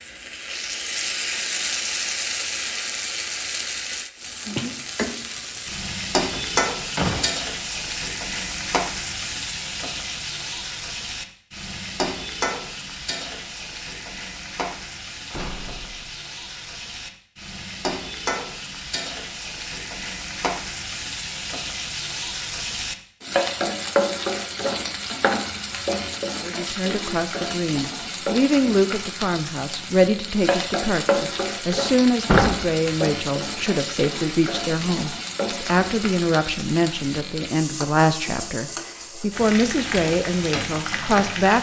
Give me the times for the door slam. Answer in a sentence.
The door slam can be heard from 6.3 to 7.3 s, from 15.3 to 16.2 s and from 32.2 to 32.8 s.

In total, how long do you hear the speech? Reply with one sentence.
You can hear the speech for 15 seconds altogether.